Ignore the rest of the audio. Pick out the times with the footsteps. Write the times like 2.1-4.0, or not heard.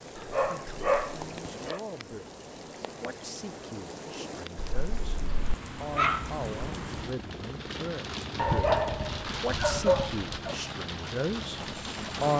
not heard.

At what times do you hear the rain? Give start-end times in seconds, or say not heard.
0.0-12.3.